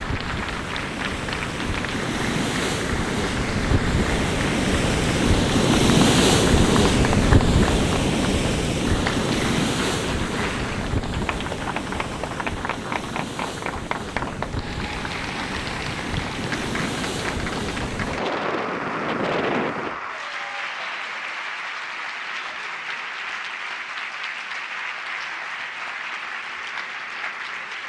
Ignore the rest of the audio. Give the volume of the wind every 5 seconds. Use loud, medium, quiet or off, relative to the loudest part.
medium, loud, medium, medium, off, off.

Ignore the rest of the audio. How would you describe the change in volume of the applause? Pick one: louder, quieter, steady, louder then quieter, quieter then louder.
steady.